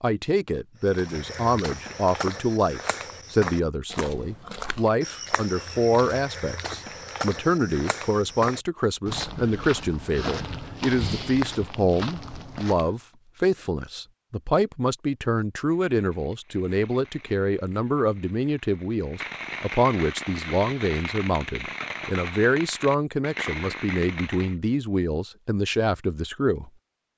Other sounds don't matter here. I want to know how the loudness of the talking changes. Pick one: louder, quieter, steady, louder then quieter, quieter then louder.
steady.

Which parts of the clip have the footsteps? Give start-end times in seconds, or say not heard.
0.8-12.9.